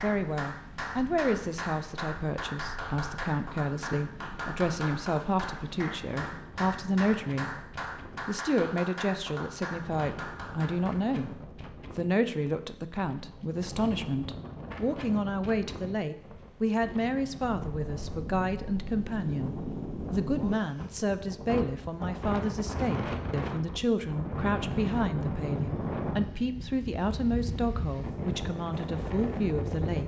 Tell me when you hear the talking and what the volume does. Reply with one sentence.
You can hear the talking from 0.0 to 30.0 s, at a steady volume.